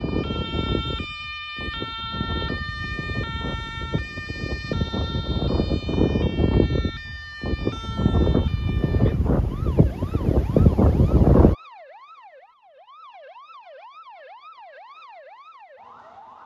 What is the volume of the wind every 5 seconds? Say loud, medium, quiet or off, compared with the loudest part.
quiet, medium, loud, off.